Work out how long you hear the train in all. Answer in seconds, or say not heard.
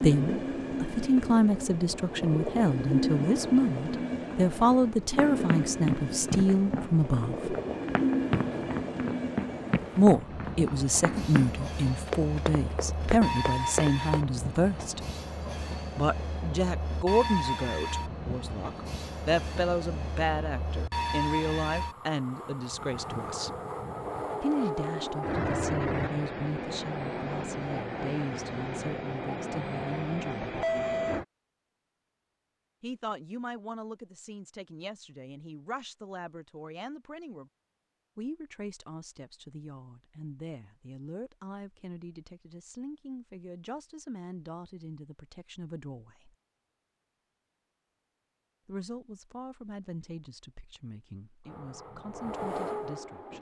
33 s.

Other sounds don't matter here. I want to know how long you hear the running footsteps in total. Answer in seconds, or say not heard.
9 s.